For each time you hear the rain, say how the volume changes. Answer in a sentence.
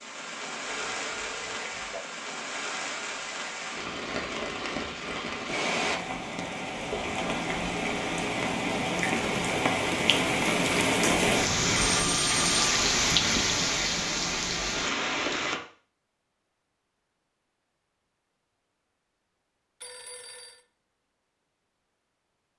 The rain can be heard from 0.0 to 15.6 s, getting louder.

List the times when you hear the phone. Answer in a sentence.
You can hear the phone from 0.7 to 2.0 s, from 11.8 to 12.5 s and from 19.8 to 20.6 s.